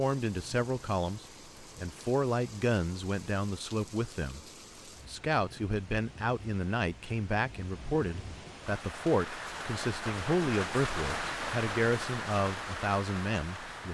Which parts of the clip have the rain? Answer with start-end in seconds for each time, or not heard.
0.0-13.8.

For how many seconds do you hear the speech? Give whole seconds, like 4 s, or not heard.
13 s.